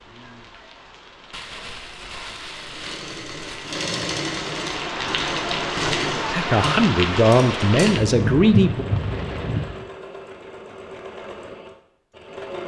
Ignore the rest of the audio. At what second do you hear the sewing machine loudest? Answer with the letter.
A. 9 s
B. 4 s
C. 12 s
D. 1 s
B.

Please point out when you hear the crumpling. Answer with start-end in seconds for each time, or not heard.
1.3-3.8.